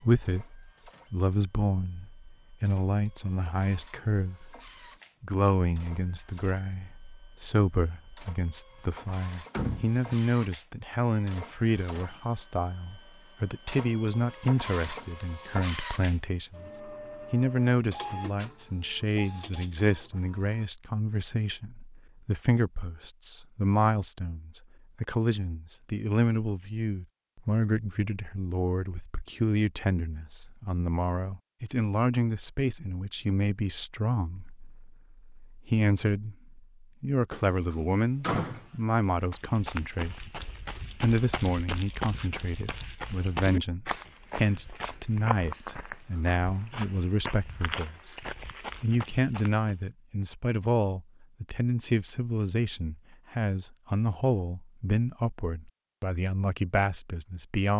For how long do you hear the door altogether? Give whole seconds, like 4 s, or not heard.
2 s.